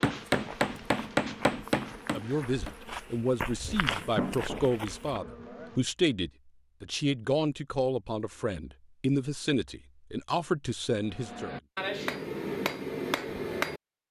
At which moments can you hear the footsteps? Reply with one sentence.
You can hear the footsteps from 0.3 to 5.2 s.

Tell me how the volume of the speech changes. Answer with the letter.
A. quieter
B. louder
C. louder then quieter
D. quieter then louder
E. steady
E.